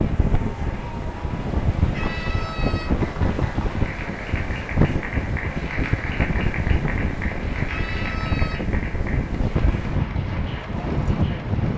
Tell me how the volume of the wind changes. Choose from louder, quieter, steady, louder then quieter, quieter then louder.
steady.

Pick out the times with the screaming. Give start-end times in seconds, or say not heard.
1.9-2.9, 7.7-8.6.